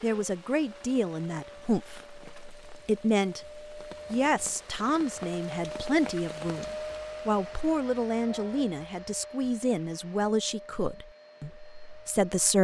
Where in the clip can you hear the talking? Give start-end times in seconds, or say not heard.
0.0-12.5.